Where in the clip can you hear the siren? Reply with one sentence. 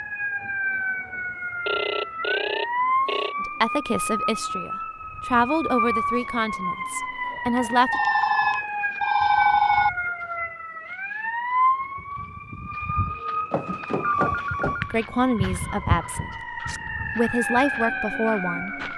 The siren can be heard from 0.0 to 18.9 s.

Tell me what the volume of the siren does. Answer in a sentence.
The loudness of the siren stays about the same.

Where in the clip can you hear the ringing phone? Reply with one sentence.
The ringing phone can be heard from 1.6 to 3.4 s, from 7.9 to 9.9 s and from 13.5 to 14.9 s.